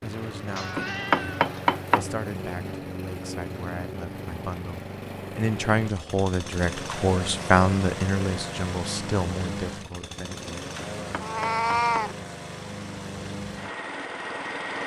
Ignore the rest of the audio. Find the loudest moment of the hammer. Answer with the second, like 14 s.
1 s.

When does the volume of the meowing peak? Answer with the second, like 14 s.
12 s.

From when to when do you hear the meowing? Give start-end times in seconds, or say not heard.
0.5-2.0, 11.2-12.2.